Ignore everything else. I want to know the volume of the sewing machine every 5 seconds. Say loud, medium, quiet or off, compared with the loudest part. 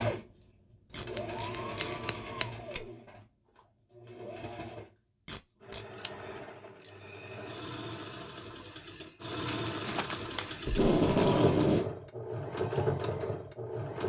medium, medium, loud.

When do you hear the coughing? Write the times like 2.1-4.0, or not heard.
not heard.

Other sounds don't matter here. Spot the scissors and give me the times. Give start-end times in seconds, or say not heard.
0.9-2.5, 5.9-6.9, 9.4-11.3.